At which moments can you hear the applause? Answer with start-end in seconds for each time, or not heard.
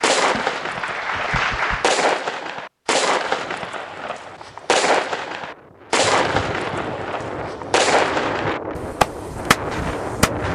0.1-1.9.